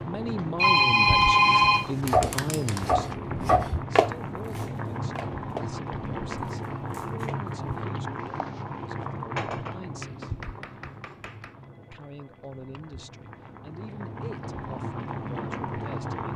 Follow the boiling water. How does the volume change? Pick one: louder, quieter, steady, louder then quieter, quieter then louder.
quieter then louder.